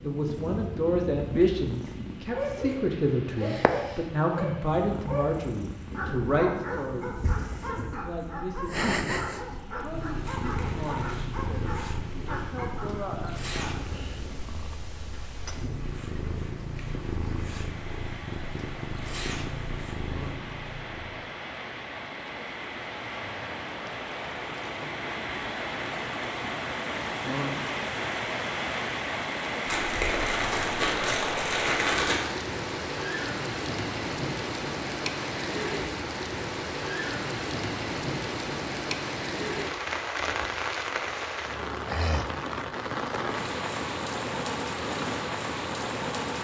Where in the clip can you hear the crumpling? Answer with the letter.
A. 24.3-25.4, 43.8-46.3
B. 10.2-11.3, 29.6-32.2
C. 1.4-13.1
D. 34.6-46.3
B.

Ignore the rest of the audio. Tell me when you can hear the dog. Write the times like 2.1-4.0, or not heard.
1.4-13.1.